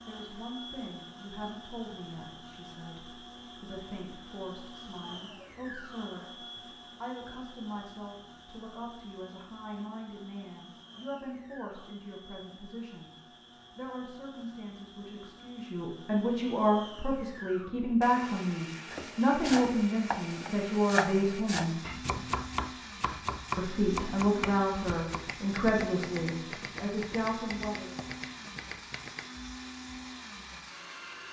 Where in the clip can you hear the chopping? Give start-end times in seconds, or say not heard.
18.9-29.3.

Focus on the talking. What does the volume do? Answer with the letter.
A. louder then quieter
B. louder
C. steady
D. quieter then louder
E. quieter
B.